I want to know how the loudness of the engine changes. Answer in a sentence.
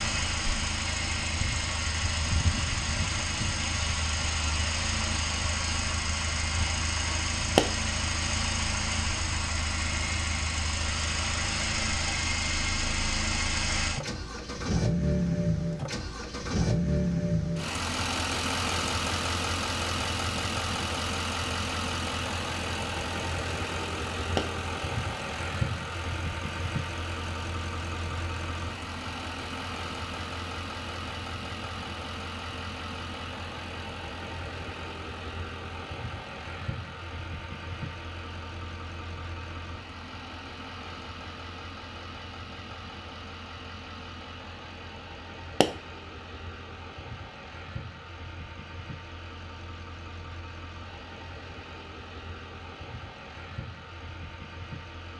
The loudness of the engine goes down.